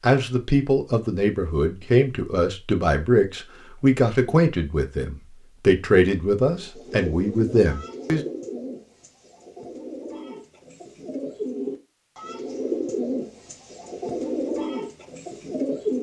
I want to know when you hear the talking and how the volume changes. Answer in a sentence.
You can hear the talking from 0.0 to 8.2 s, at a steady volume.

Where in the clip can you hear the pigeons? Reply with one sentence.
The pigeons can be heard from 6.4 to 15.9 s.